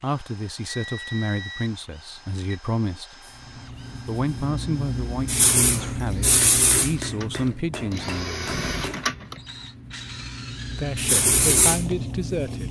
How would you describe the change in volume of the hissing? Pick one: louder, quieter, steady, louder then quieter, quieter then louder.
quieter then louder.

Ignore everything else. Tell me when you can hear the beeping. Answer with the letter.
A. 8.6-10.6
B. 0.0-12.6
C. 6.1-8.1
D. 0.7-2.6
D.